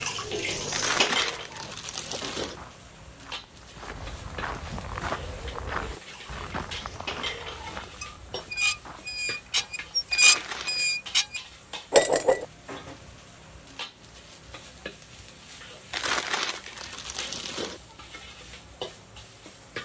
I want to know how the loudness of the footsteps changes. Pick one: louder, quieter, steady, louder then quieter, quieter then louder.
louder then quieter.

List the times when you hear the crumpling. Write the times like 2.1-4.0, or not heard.
0.7-2.6, 10.1-10.8, 15.9-17.8.